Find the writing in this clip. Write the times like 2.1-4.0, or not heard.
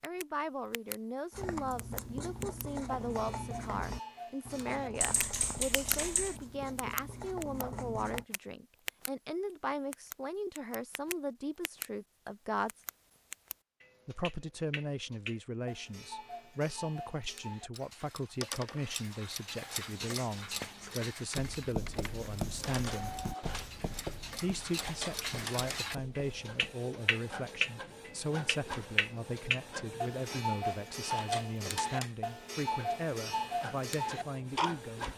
1.3-8.2, 19.9-26.8.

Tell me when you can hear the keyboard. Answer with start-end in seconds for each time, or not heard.
5.0-6.4, 20.5-22.2.